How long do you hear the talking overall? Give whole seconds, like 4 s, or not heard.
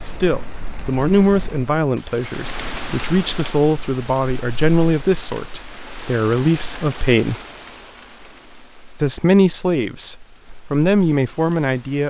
10 s.